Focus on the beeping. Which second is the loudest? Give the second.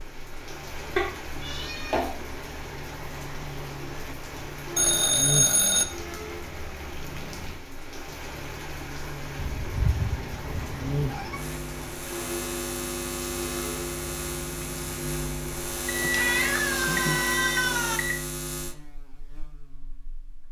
5 s.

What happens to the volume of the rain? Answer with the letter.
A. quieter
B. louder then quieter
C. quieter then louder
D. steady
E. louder
D.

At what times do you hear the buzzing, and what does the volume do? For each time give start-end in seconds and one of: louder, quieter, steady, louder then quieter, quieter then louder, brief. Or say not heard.
0.0-20.4 louder.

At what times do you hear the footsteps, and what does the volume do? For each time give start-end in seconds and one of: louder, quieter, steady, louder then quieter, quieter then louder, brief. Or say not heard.
not heard.